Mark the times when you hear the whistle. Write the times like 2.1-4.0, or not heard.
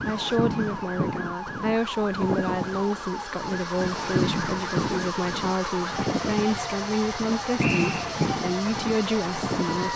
7.5-8.2.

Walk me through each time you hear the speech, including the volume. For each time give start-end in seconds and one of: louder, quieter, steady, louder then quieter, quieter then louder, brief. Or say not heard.
0.1-9.9 steady.